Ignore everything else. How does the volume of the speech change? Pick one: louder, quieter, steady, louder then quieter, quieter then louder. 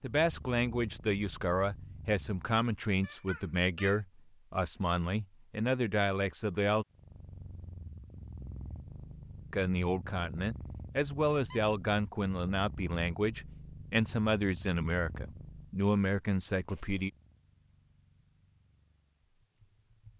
steady.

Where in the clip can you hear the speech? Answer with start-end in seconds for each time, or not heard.
0.0-6.8, 9.5-17.1.